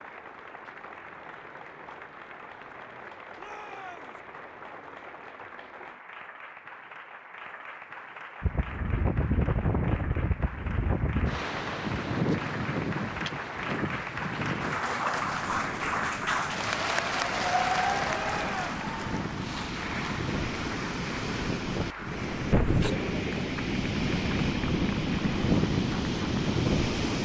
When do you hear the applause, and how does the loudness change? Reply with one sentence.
The applause can be heard from 0.0 to 27.1 s, getting louder then quieter.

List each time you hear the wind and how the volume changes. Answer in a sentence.
You can hear the wind from 8.4 to 27.1 s, getting quieter then louder.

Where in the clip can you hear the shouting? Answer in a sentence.
The shouting can be heard from 3.4 to 4.2 s and from 18.1 to 18.8 s.